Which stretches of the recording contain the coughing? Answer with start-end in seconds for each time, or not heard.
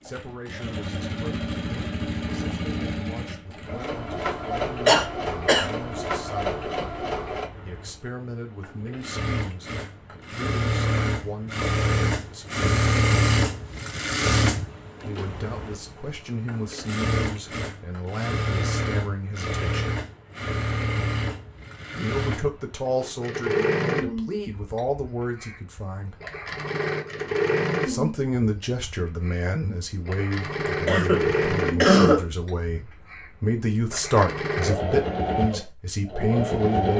4.8-5.7, 30.9-32.2.